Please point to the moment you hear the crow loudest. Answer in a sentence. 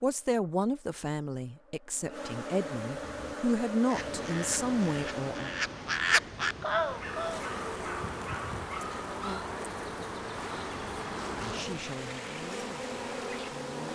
The volume of the crow peaks at 6 seconds.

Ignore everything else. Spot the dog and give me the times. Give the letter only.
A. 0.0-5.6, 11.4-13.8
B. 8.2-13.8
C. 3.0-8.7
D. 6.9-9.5
D.